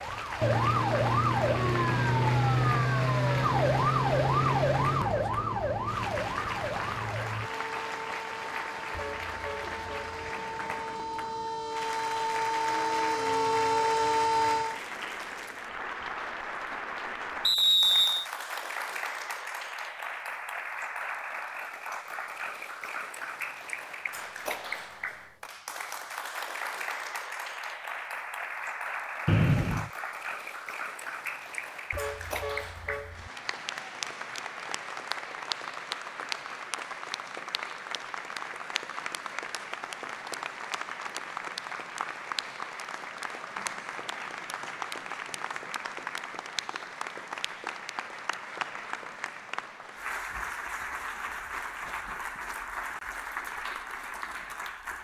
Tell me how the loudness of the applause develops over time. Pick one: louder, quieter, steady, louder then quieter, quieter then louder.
steady.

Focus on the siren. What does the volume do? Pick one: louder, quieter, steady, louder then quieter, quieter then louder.
quieter then louder.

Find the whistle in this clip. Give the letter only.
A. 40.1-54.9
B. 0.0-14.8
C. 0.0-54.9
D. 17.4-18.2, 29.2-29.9
D.